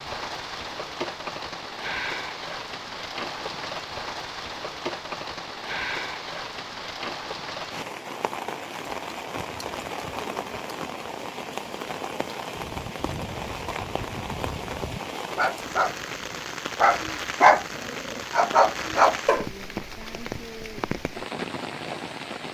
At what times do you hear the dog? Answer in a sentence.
The dog can be heard from 12.6 to 19.4 s.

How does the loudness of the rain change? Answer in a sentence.
The volume of the rain stays about the same.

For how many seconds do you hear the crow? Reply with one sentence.
You can't hear the crow here.